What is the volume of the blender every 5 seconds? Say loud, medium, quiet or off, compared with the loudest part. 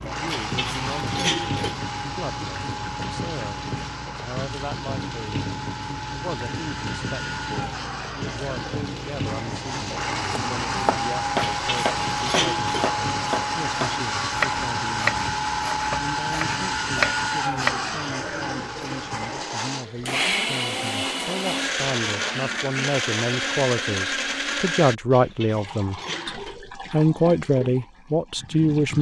medium, medium, loud, loud, loud, off.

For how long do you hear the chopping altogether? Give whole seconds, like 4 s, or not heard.
8 s.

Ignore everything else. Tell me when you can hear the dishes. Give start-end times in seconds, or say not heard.
0.2-1.8, 11.3-12.9, 25.1-26.6.